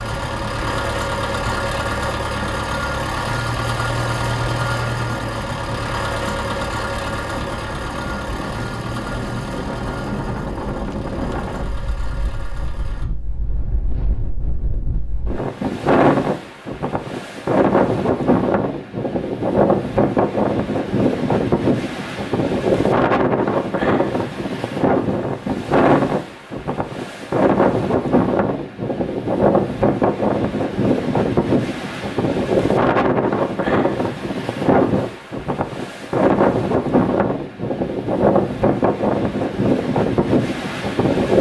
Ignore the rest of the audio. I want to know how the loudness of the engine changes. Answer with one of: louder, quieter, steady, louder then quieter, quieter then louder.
quieter.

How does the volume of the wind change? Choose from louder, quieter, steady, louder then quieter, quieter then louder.
louder.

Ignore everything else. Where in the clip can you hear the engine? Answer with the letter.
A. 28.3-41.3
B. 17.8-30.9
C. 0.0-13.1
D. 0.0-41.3
C.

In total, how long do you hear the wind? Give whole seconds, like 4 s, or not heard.
41 s.